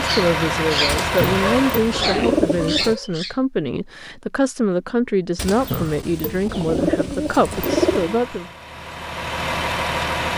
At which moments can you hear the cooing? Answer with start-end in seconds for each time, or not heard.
0.8-3.0, 5.3-8.2.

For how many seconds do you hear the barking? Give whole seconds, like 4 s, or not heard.
3 s.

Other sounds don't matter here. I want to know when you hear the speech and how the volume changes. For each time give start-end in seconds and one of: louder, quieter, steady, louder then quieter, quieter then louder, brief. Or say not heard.
0.0-8.5 steady.